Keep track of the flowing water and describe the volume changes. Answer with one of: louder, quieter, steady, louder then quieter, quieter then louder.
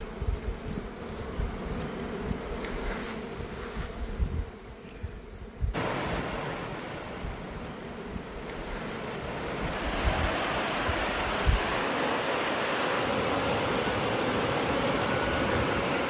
louder.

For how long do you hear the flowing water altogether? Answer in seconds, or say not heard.
10 s.